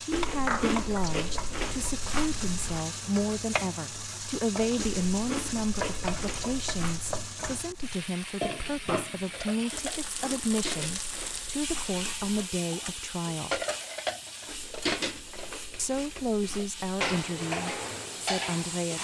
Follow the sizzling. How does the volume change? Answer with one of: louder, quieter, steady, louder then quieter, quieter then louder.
quieter.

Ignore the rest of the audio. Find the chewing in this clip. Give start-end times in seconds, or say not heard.
0.1-2.9, 4.8-7.3, 9.7-12.3, 14.4-17.0.